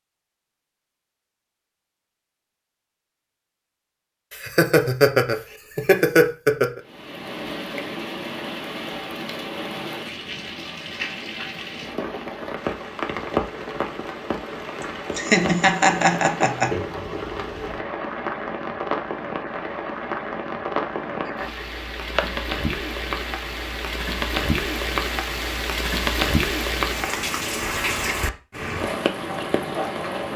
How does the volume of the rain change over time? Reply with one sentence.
The volume of the rain goes up.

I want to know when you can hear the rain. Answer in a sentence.
The rain can be heard from 6.8 to 30.3 s.